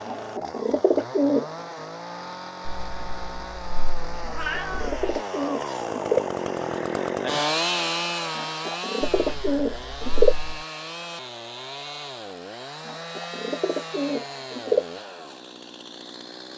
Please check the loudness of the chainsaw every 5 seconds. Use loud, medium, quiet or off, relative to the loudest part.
medium, loud, medium, quiet.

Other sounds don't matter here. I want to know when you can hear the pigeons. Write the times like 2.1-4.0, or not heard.
0.1-1.5, 4.2-6.2, 8.3-10.3, 12.8-14.8.